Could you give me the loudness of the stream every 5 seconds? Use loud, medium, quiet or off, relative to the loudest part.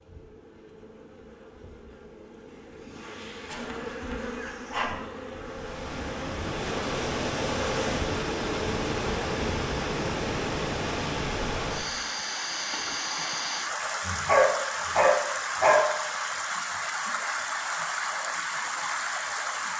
off, loud, loud, loud.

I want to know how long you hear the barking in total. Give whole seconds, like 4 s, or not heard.
3 s.